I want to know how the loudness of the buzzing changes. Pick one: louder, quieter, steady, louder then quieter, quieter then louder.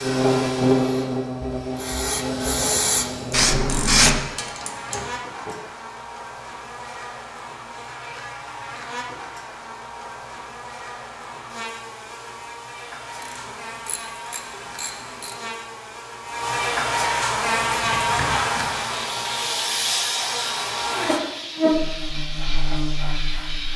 quieter then louder.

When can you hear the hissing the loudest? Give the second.
4 s.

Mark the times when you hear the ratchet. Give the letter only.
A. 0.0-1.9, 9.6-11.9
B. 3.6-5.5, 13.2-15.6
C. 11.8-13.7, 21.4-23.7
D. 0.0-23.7
B.